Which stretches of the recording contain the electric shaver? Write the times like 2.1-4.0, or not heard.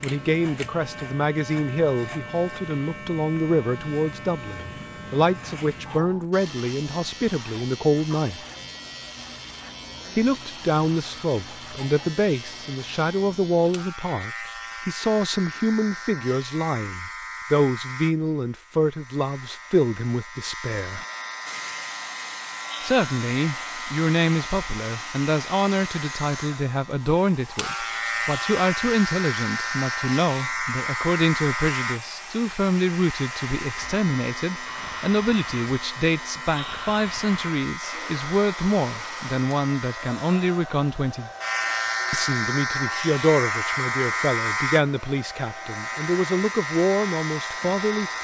0.0-48.1.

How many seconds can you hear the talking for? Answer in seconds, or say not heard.
44 s.